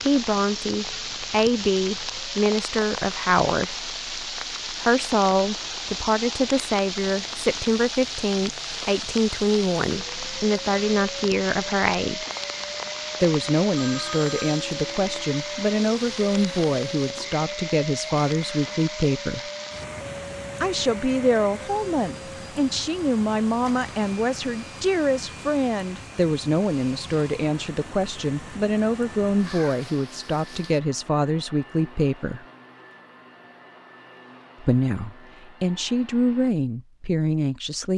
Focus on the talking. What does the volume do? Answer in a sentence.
The volume of the talking stays about the same.